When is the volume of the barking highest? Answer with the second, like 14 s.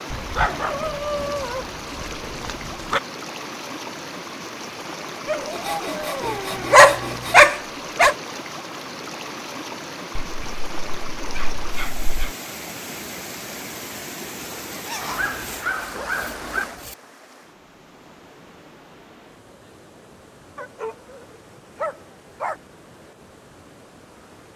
7 s.